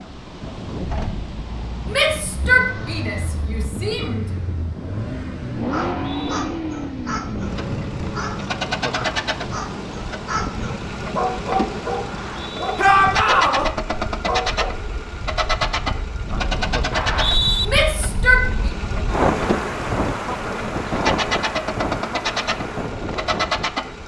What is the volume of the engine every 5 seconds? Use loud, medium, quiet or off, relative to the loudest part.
medium, loud, loud, loud, loud.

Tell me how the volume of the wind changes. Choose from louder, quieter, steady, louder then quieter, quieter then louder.
louder.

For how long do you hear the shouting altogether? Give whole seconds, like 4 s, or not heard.
4 s.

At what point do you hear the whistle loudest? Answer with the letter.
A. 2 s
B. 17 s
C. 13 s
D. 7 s
B.